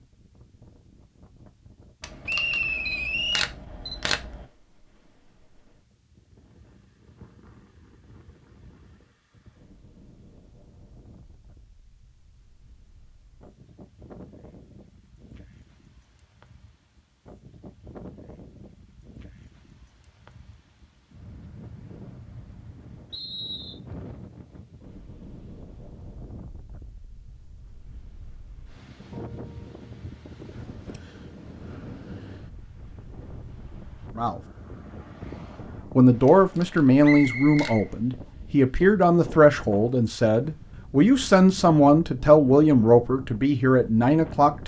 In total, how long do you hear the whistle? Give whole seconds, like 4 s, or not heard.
3 s.